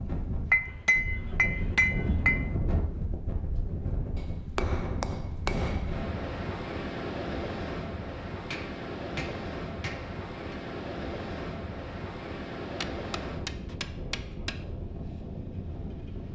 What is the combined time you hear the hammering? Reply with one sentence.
You can hear the hammering for 8 seconds altogether.